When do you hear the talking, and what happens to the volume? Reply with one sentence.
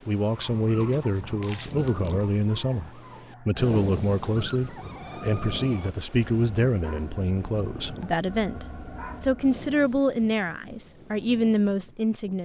You can hear the talking from 0.1 to 12.4 s, at a steady volume.